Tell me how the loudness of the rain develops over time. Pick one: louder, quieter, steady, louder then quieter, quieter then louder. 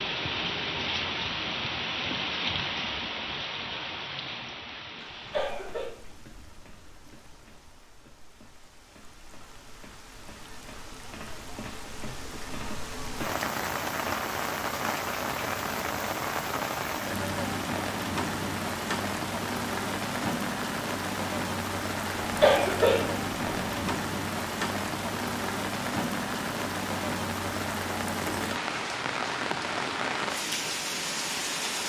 quieter then louder.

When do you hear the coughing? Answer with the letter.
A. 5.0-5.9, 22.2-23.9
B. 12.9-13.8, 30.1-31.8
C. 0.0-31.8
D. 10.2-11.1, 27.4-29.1
A.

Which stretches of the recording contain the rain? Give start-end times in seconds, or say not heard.
0.0-31.8.